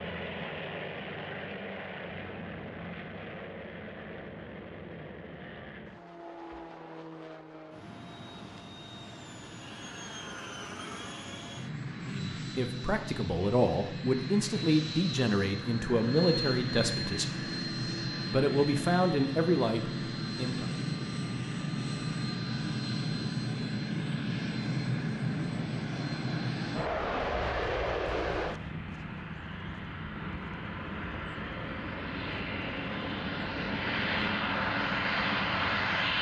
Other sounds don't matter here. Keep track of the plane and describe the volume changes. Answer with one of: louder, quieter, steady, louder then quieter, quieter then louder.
louder.